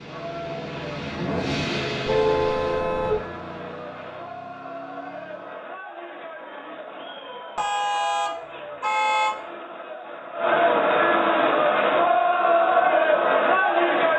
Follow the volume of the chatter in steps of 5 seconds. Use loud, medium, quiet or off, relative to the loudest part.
quiet, quiet, loud.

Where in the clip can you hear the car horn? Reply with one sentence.
The car horn can be heard from 2.0 to 3.2 s and from 7.5 to 9.4 s.